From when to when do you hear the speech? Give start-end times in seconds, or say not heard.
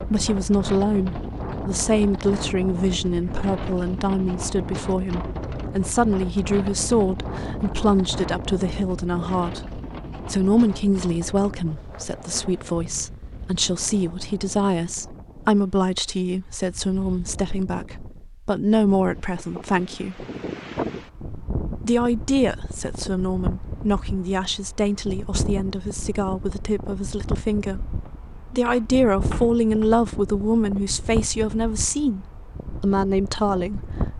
0.0-20.2, 21.8-33.8.